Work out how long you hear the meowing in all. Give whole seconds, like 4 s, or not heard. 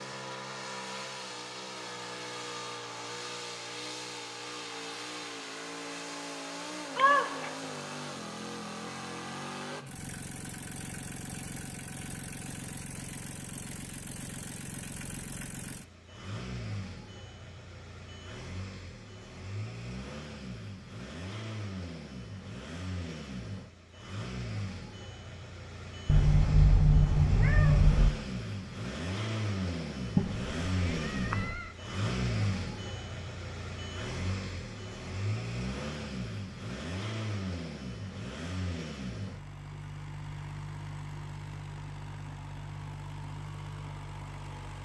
4 s.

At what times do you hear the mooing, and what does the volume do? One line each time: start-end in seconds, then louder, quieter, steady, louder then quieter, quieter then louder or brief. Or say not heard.
not heard.